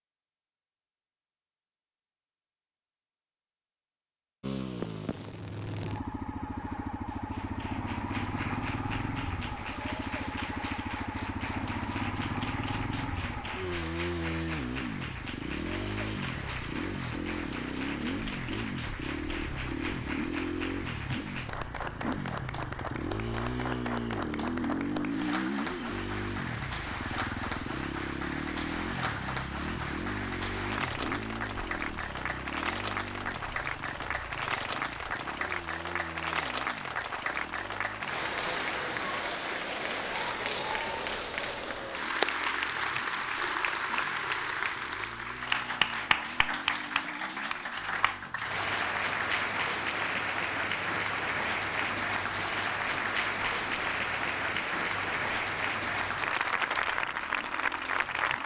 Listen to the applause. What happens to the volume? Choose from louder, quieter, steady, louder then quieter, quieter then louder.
louder.